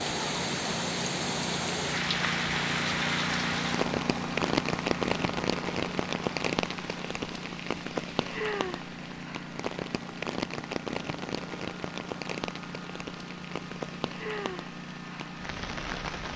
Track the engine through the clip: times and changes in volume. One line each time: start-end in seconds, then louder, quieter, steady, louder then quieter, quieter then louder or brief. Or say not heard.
0.0-16.3 quieter.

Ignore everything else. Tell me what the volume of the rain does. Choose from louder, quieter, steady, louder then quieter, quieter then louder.
quieter.